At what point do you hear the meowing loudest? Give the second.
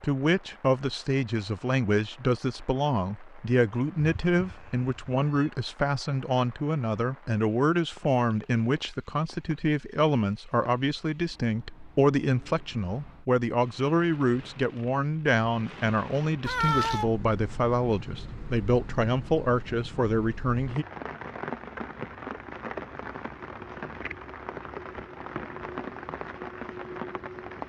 17 s.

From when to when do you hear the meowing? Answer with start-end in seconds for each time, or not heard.
4.0-5.5, 16.4-17.1.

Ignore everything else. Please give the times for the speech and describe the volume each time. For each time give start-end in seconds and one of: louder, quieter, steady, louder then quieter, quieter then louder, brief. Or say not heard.
0.0-20.9 steady.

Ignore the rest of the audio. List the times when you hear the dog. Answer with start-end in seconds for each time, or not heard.
not heard.